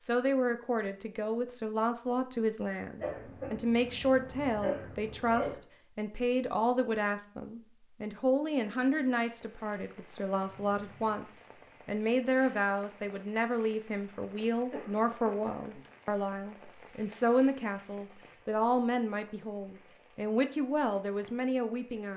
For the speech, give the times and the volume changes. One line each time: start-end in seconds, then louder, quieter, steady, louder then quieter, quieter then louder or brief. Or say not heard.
0.0-22.1 steady.